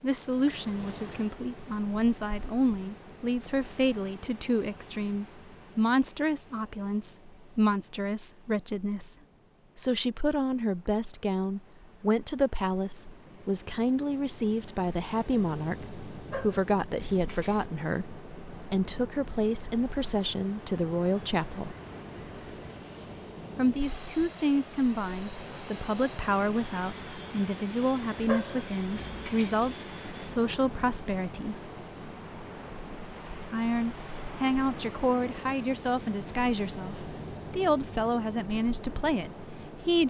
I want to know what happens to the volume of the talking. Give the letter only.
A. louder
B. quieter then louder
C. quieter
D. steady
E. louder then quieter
D.